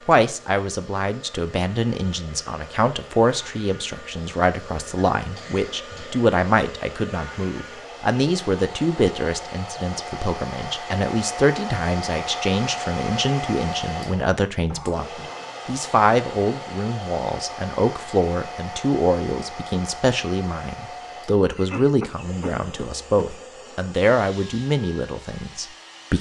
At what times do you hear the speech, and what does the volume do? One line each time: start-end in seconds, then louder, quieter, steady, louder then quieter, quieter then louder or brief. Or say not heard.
0.1-26.1 steady.